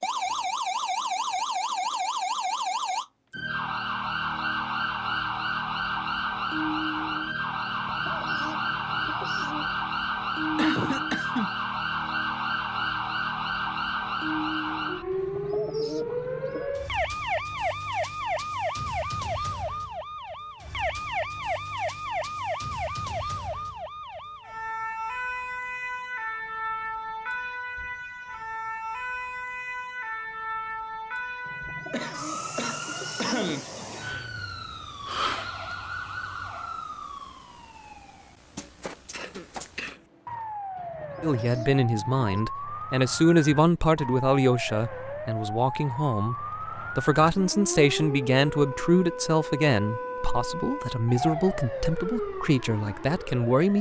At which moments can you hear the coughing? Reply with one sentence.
You can hear the coughing from 10.6 to 11.5 s, from 31.9 to 33.6 s and from 39.1 to 40.0 s.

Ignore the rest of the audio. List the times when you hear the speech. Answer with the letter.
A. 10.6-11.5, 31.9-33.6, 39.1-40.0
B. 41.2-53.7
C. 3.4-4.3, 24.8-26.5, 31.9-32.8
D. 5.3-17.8
B.